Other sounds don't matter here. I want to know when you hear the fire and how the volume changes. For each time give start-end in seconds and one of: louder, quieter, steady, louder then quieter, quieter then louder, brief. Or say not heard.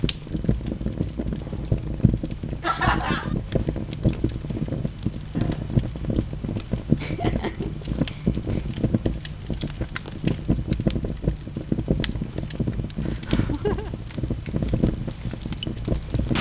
0.0-16.3 steady.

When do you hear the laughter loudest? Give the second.
3 s.